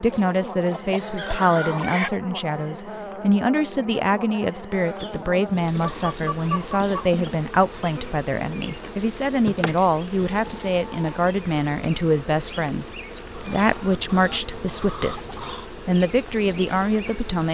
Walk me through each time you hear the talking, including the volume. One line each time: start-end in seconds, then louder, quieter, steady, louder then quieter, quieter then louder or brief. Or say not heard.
0.0-17.4 steady.